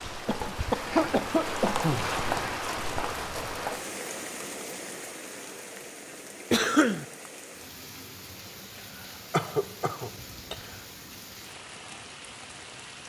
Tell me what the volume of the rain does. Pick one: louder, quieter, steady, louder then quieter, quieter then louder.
quieter.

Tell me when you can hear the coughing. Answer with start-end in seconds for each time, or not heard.
0.2-2.1, 6.5-7.0, 8.8-10.8.